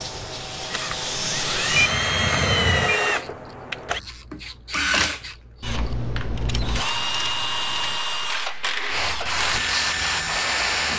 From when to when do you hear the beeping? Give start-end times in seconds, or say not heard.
1.8-3.0.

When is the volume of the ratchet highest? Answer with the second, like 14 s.
9 s.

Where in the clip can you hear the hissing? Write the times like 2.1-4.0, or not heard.
0.0-1.9, 8.8-10.9.